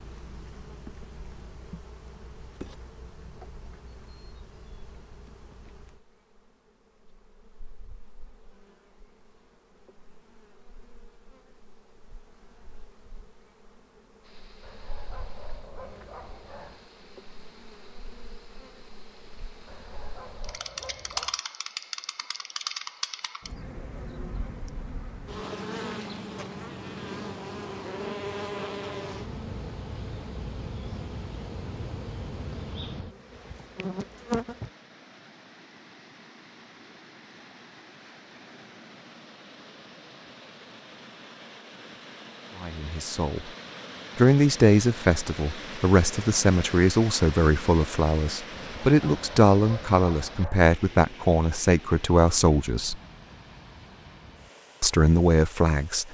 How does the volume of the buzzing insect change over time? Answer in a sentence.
The loudness of the buzzing insect goes down, then up.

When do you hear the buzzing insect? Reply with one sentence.
The buzzing insect can be heard from 0.0 to 34.7 s.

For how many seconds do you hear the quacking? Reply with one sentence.
The quacking can't be heard in this clip.